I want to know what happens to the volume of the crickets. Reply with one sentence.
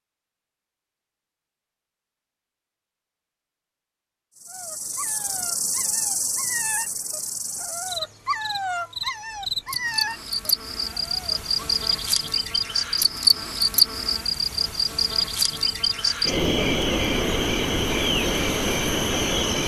The loudness of the crickets goes up.